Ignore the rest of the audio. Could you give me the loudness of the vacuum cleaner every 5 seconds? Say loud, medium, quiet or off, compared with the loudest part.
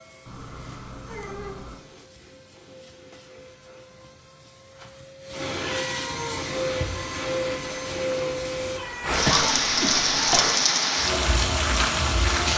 quiet, loud, off.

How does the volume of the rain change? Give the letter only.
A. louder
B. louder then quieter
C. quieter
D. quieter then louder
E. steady
A.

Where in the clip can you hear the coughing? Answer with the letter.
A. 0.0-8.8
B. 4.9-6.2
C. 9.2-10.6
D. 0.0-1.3
C.